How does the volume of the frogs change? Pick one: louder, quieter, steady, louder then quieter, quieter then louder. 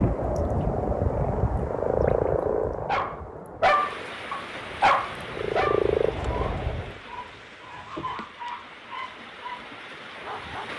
quieter then louder.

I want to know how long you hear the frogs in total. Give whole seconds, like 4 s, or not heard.
7 s.